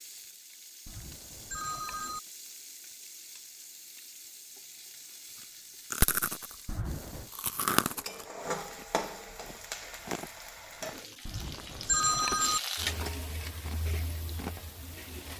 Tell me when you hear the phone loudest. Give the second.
12 s.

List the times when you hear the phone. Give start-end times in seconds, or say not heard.
0.8-2.2, 6.7-7.3, 11.2-12.6.